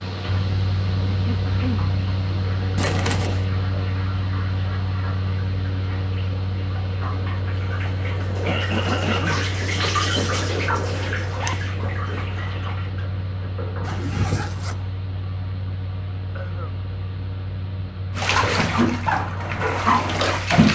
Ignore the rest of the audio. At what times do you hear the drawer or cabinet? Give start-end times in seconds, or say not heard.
not heard.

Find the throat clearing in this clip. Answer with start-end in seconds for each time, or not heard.
1.1-1.9, 8.4-9.4, 16.4-16.8.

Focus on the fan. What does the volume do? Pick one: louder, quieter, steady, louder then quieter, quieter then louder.
quieter.